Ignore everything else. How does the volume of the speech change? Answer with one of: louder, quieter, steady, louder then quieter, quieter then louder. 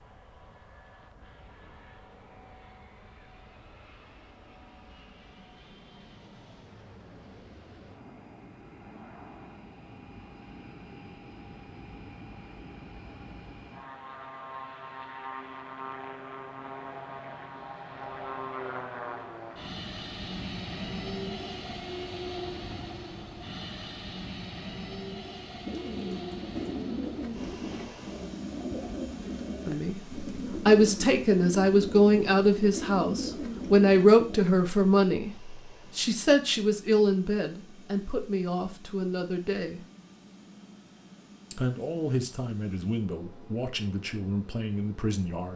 quieter.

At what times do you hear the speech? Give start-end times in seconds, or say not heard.
29.6-39.8, 41.5-45.5.